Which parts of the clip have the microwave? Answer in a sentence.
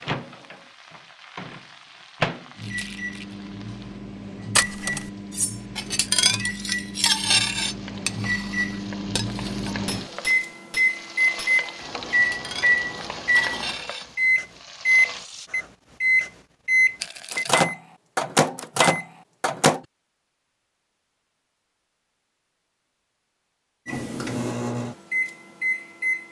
The microwave can be heard from 0.0 to 19.8 s and from 23.9 to 26.2 s.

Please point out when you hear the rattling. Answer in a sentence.
You can hear the rattling from 2.6 to 3.4 s and from 17.0 to 17.6 s.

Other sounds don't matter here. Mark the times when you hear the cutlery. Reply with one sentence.
The cutlery can be heard from 4.5 to 14.1 s.